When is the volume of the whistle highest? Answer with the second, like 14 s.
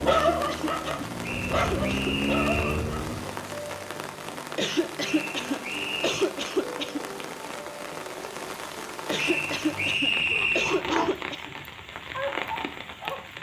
10 s.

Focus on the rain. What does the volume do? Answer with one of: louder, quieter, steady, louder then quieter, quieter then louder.
steady.